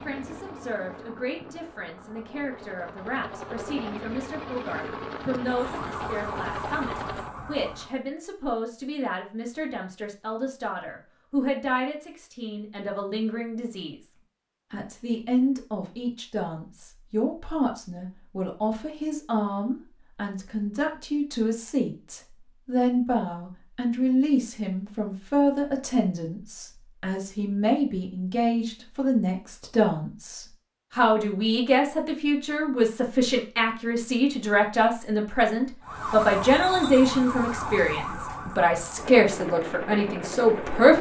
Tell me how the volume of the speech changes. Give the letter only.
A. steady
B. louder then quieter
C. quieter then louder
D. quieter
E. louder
E.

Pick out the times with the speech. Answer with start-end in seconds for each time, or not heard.
0.1-14.0, 14.7-40.9.